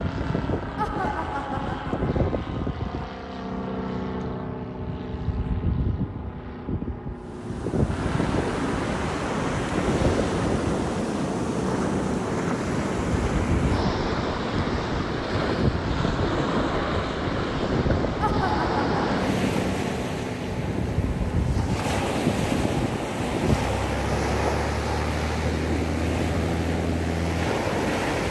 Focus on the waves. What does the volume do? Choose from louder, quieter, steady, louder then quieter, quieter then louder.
steady.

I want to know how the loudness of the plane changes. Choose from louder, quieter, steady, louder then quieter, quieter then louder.
steady.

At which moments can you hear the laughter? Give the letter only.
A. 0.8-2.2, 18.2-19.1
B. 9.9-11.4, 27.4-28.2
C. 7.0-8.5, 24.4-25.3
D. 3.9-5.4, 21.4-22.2
A.